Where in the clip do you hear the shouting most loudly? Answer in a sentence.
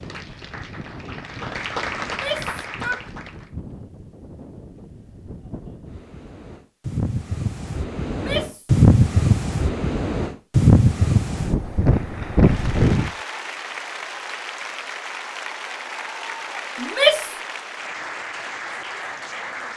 The loudest moment of the shouting is at 17 seconds.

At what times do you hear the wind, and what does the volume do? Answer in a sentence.
You can hear the wind from 0.0 to 13.1 s, getting louder.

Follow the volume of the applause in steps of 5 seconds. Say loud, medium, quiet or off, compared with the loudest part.
loud, off, loud, loud.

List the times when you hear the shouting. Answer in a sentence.
You can hear the shouting from 2.0 to 3.0 s, from 8.1 to 8.7 s and from 16.8 to 17.4 s.